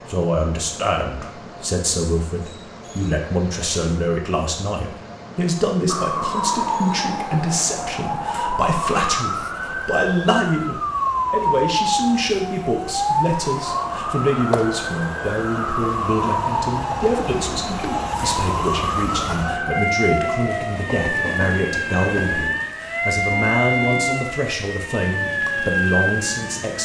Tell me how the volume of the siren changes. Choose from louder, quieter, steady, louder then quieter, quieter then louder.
steady.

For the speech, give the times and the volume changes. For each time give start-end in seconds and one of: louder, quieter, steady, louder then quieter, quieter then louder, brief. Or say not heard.
0.1-26.7 steady.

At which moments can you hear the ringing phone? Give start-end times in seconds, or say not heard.
not heard.